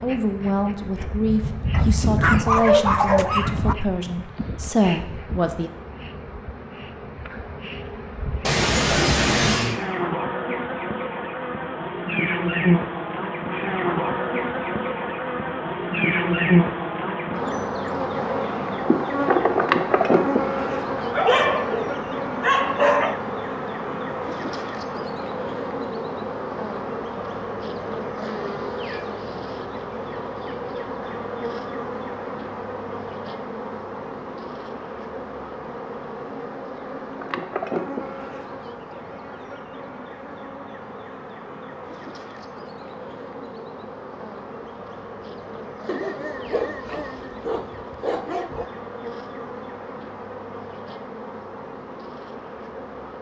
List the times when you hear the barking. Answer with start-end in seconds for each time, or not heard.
1.7-3.8, 20.9-23.2, 45.9-48.6.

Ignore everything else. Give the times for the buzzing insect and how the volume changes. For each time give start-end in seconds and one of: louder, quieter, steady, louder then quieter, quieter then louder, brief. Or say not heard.
0.0-53.1 louder then quieter.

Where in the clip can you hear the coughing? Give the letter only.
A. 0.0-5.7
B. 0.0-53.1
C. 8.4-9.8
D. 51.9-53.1
C.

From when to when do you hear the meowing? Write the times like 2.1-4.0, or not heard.
not heard.